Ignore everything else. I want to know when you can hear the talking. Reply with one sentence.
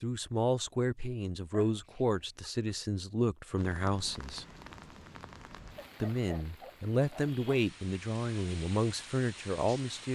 You can hear the talking from 0.0 to 4.5 s and from 6.0 to 10.1 s.